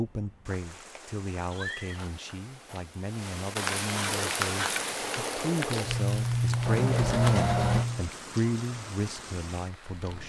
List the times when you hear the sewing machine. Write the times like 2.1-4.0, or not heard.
4.0-8.1.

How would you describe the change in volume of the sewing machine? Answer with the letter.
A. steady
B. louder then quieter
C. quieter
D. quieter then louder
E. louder
E.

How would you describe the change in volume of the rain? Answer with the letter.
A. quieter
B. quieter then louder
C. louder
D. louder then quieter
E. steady
D.